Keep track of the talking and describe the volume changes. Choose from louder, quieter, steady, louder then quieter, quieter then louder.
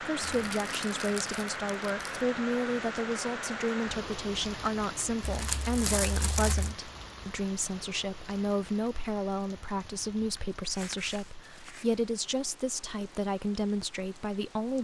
steady.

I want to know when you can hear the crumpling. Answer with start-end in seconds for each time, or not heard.
0.2-2.2, 5.2-6.8, 10.6-11.8.